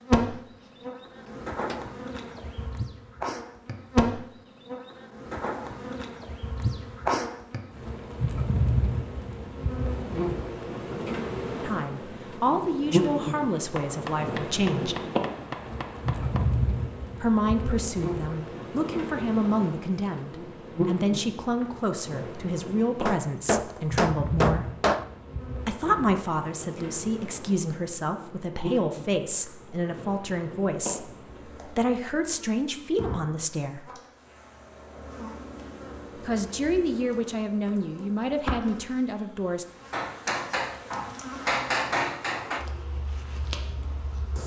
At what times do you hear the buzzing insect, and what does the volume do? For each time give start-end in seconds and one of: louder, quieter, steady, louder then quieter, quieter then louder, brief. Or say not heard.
0.0-44.4 quieter.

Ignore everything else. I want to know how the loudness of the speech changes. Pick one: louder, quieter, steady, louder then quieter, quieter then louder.
steady.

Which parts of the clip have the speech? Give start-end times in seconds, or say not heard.
11.6-14.9, 17.2-24.7, 25.6-33.9, 36.1-39.6.